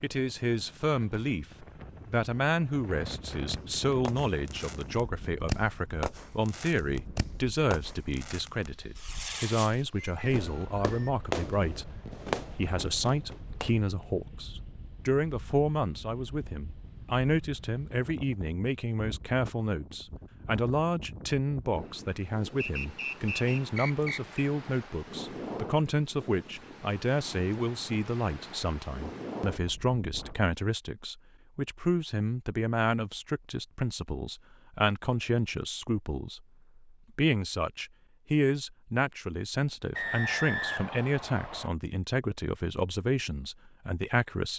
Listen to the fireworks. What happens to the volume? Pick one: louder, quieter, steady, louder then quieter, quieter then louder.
steady.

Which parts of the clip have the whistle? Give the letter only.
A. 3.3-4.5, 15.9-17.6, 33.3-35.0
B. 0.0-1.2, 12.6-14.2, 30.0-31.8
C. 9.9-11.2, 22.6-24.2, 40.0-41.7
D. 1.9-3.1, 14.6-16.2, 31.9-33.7
C.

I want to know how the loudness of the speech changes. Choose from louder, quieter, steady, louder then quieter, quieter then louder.
steady.